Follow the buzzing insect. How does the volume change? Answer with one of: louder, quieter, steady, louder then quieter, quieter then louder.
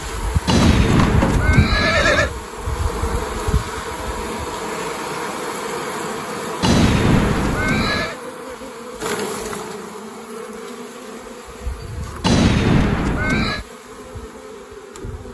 quieter.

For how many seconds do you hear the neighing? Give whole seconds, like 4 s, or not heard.
5 s.